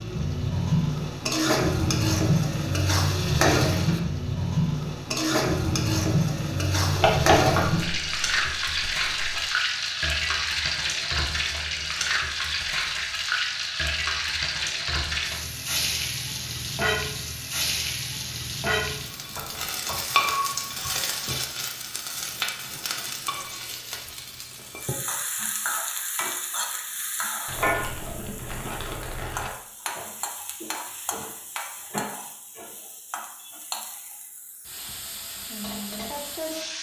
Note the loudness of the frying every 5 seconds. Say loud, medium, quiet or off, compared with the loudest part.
loud, loud, loud, medium, medium, medium, quiet, medium.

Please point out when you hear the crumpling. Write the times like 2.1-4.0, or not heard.
6.9-9.4, 27.4-29.5.